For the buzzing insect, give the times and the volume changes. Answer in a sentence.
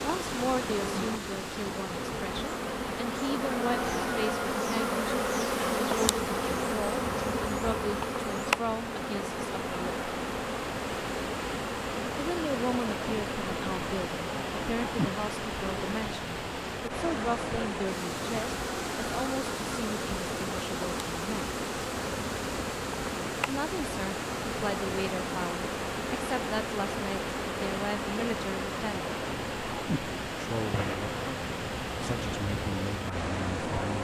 The buzzing insect can be heard from 0.0 to 33.9 s, getting quieter.